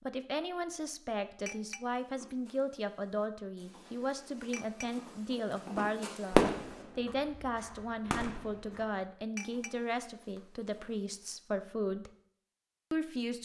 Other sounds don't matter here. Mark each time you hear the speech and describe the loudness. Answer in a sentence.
The speech can be heard from 0.0 to 12.1 s, at a steady volume; and briefly from 12.9 to 13.4 s.